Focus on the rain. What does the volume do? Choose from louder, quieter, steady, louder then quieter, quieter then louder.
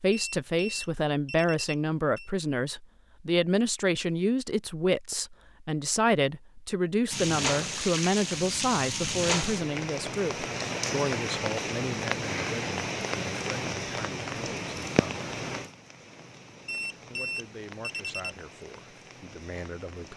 quieter.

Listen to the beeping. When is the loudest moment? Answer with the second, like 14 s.
17 s.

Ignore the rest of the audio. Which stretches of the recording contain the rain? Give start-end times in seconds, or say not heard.
7.1-20.1.